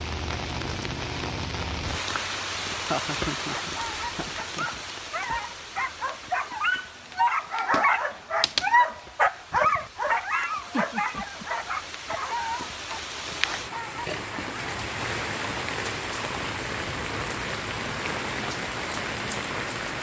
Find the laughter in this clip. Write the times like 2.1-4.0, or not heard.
2.7-4.8, 10.6-11.4.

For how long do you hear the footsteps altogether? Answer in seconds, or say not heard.
not heard.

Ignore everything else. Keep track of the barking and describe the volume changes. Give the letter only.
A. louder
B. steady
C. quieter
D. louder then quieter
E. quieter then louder
D.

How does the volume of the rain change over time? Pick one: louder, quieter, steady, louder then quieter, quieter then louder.
quieter then louder.